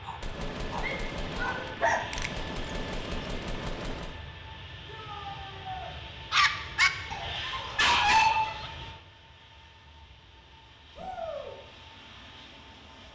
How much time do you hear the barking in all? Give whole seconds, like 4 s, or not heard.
5 s.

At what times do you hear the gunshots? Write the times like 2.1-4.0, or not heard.
0.2-4.2.